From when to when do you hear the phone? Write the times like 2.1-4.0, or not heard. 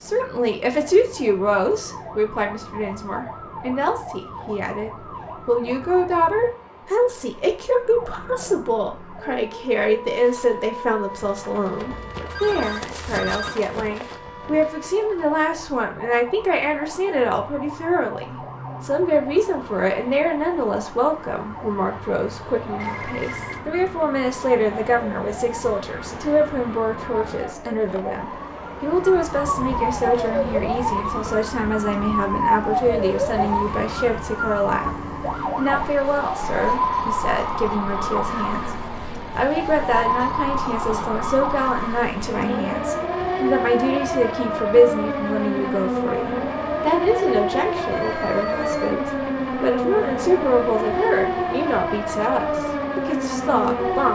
11.9-13.6, 22.8-23.6, 47.9-49.0.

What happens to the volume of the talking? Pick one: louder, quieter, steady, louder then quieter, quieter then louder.
steady.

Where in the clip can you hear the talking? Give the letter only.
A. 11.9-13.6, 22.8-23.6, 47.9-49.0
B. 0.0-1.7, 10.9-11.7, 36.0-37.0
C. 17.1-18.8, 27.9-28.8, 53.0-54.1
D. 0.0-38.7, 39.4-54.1
D.